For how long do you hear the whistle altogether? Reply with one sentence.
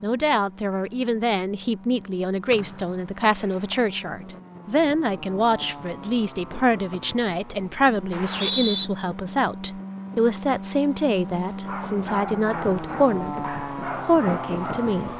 The whistle can be heard for 2 seconds in total.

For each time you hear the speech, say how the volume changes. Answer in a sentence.
The speech can be heard from 0.0 to 15.1 s, at a steady volume.